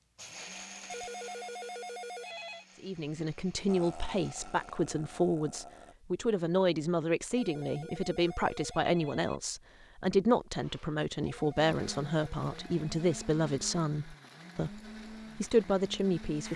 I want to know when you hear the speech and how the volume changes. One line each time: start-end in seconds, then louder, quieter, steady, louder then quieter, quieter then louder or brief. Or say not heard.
2.8-16.5 steady.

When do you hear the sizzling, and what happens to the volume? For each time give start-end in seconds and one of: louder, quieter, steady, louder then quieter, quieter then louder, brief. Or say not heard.
not heard.